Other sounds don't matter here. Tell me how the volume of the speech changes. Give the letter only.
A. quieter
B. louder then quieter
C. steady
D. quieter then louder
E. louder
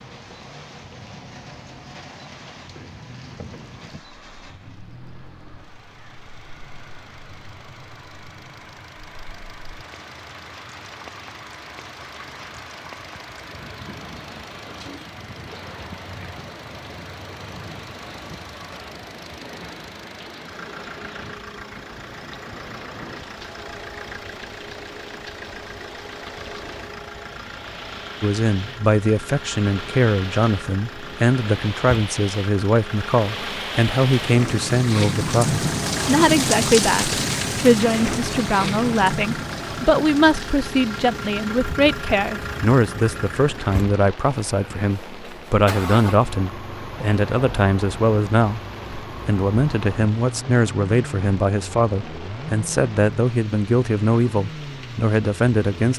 C.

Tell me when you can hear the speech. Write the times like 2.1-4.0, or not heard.
28.2-55.9.